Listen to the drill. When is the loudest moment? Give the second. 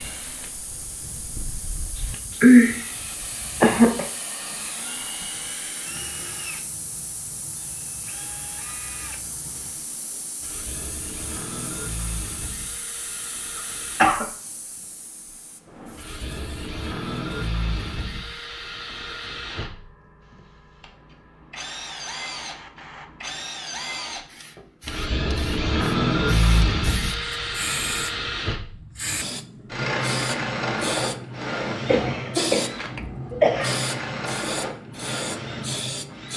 26 s.